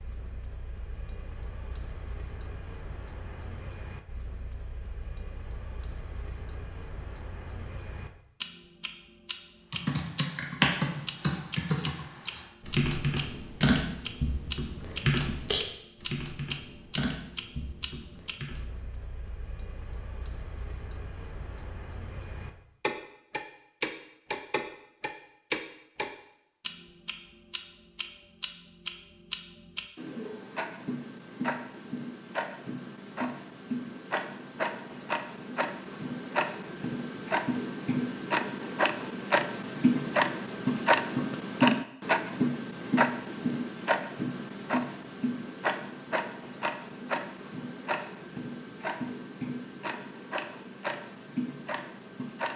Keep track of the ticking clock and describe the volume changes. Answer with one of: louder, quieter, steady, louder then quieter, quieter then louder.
louder then quieter.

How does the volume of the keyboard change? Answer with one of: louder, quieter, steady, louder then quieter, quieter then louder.
quieter.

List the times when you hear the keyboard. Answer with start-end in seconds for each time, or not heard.
9.7-18.6.